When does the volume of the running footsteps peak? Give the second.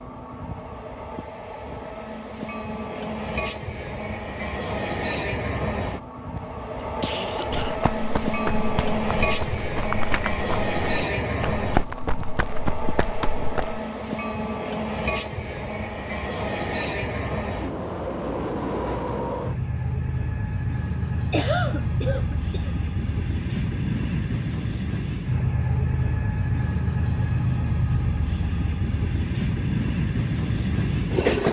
12 s.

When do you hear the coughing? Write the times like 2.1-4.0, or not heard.
6.3-7.8, 21.3-22.7.